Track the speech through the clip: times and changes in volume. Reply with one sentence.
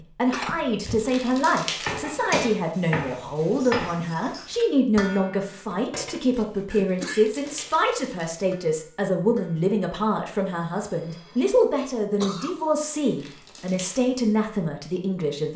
The speech can be heard from 0.0 to 15.5 s, at a steady volume.